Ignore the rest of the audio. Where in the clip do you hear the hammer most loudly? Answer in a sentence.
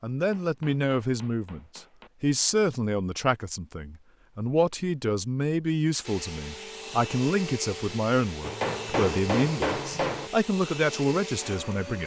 The loudest moment of the hammer is at 9 seconds.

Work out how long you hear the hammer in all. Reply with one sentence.
You can hear the hammer for 4 seconds altogether.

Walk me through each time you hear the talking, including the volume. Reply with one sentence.
You can hear the talking from 0.0 to 12.0 s, at a steady volume.